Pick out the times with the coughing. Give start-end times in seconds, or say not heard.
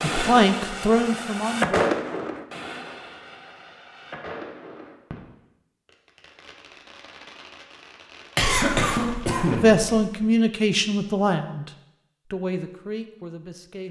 8.3-9.9.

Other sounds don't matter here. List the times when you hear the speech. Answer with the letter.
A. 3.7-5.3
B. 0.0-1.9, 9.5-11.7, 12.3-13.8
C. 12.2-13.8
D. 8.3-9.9
B.